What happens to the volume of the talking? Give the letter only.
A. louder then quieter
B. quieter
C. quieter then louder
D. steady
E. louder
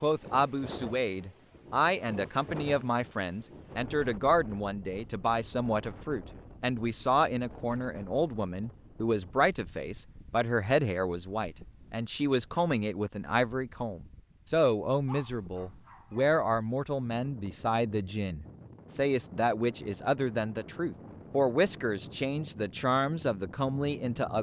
D.